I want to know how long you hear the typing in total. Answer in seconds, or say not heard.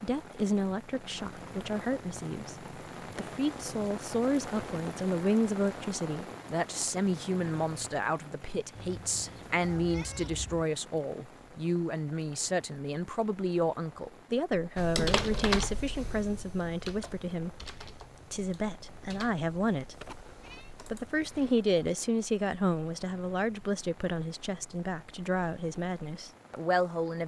7 s.